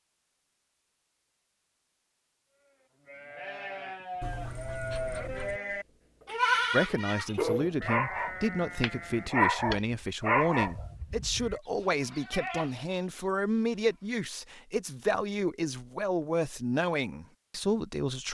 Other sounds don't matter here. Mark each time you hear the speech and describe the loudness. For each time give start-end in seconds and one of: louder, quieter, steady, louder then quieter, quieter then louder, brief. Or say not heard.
6.7-18.2 steady.